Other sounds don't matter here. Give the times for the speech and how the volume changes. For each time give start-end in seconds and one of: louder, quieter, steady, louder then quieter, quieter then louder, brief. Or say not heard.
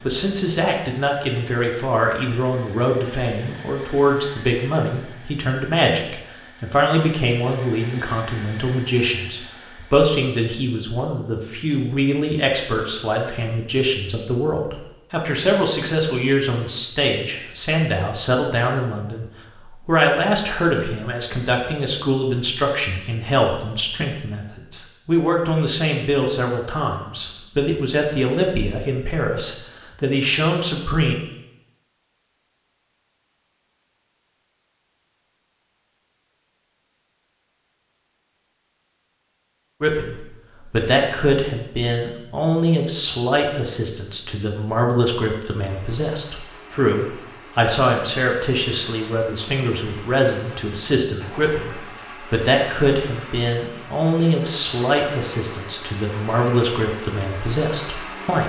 0.0-31.1 steady
39.8-58.4 steady.